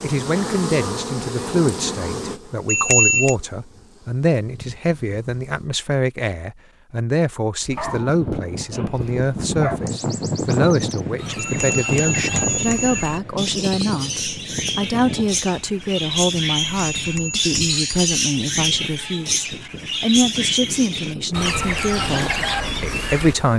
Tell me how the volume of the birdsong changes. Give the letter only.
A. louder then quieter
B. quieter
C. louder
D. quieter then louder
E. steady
C.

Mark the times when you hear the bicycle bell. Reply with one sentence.
The bicycle bell can be heard from 2.6 to 3.4 s, from 11.3 to 13.2 s and from 16.6 to 18.1 s.